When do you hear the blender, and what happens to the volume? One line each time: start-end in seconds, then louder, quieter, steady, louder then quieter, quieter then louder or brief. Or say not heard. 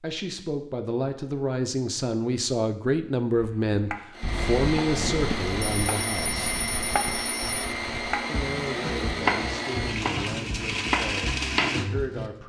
4.1-12.4 steady.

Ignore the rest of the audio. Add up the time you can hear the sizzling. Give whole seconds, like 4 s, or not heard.
not heard.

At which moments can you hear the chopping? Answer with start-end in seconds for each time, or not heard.
3.4-12.3.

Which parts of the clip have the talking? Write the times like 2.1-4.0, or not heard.
0.0-6.5, 8.2-12.4.